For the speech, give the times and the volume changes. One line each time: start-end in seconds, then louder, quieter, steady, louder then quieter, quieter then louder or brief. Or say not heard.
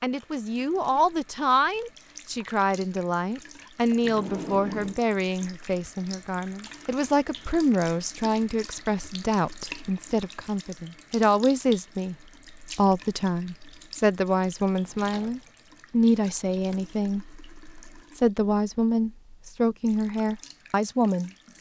0.0-21.3 steady.